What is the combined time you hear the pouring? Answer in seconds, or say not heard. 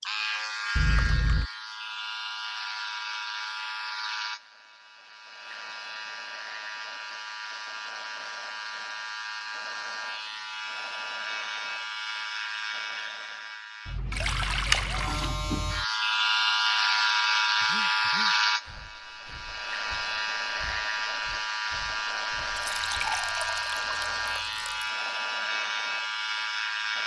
4 s.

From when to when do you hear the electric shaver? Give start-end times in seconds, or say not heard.
0.0-27.0.